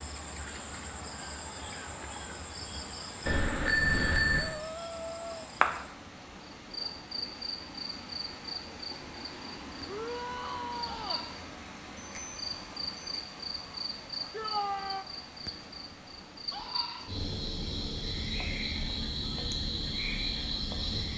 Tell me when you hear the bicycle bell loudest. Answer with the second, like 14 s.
4 s.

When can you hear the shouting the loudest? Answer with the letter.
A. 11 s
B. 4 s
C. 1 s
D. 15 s
D.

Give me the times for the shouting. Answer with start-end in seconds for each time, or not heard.
4.4-5.5, 9.8-11.2, 14.3-15.1.